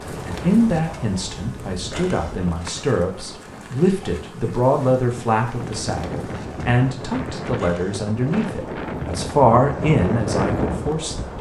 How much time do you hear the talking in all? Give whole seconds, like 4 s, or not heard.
11 s.